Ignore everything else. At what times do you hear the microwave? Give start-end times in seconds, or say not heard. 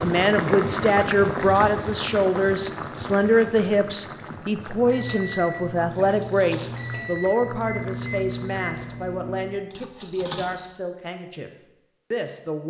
4.7-9.6.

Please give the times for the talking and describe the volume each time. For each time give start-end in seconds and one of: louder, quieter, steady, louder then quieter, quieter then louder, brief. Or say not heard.
0.0-11.5 quieter
12.1-12.6 brief.